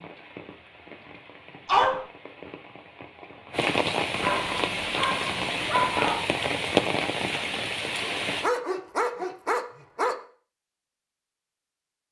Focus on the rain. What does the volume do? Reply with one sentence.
The loudness of the rain goes up.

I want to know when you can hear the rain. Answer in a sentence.
The rain can be heard from 0.0 to 8.5 s.